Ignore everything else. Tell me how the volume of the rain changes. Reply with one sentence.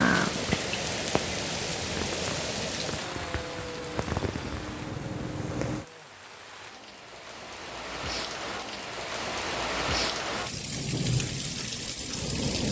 The loudness of the rain goes down, then up.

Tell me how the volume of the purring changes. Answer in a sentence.
The loudness of the purring goes down, then up.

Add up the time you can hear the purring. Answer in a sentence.
You can hear the purring for 6 seconds altogether.